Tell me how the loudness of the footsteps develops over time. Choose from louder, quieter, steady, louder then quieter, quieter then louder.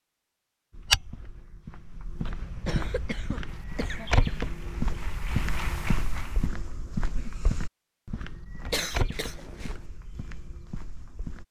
louder then quieter.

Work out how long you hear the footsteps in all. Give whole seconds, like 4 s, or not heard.
11 s.